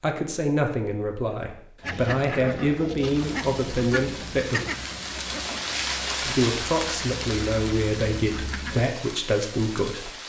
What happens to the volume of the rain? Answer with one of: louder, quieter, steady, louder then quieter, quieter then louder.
louder then quieter.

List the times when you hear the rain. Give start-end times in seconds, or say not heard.
3.0-10.2.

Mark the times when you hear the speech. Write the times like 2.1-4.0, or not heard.
0.0-4.6, 6.2-10.1.